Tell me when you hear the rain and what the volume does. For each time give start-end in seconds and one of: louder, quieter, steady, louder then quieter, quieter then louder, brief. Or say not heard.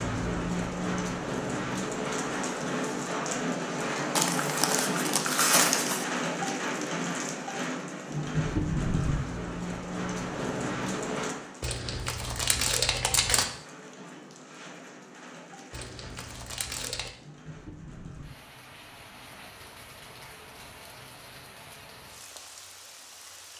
0.0-23.5 quieter.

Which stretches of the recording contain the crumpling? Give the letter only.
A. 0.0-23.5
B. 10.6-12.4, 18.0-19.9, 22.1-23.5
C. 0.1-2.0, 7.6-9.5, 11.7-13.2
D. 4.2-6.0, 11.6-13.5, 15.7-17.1
D.